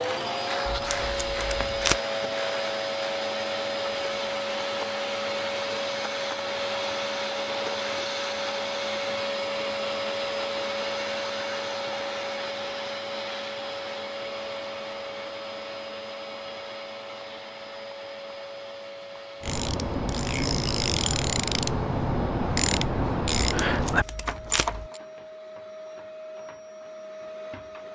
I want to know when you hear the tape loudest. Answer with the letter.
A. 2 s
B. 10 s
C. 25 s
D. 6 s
A.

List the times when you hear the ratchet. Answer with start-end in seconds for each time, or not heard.
0.0-3.0, 19.4-25.0.